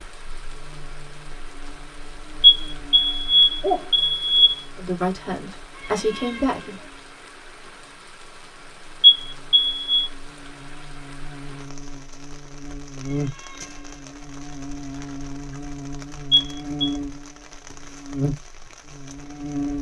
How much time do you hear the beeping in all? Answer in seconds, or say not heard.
4 s.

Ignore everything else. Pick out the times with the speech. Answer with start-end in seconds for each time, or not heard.
4.8-6.8.